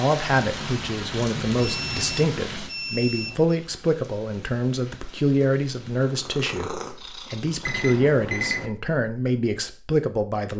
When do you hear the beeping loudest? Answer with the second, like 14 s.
8 s.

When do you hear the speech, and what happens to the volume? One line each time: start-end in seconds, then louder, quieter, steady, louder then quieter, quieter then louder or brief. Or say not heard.
0.0-10.5 steady.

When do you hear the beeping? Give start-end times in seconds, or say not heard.
1.6-3.5, 7.6-8.7.